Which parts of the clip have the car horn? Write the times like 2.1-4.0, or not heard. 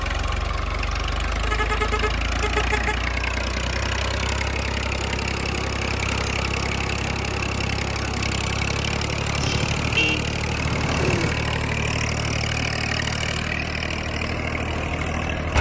1.4-3.0, 9.3-11.3.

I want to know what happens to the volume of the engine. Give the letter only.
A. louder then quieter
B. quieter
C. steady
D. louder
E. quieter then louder
C.